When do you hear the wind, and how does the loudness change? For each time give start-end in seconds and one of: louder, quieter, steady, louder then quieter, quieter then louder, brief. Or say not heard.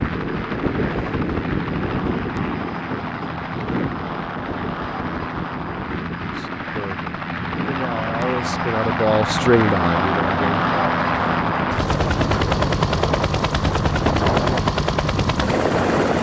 0.0-16.1 quieter then louder.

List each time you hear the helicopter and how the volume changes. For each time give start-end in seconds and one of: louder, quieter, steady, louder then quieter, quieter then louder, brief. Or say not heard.
0.0-16.1 louder.